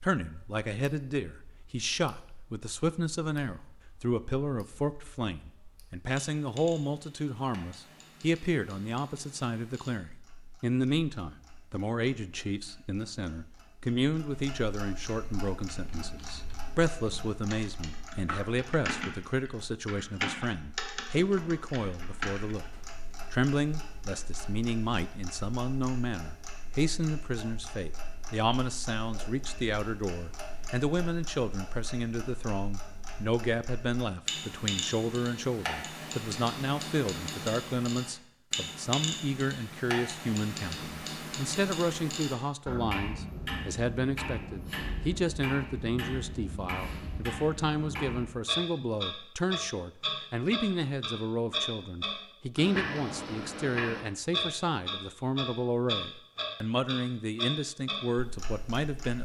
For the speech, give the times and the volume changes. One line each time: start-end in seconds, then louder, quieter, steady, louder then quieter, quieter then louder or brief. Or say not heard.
0.0-22.6 steady
23.3-59.2 steady.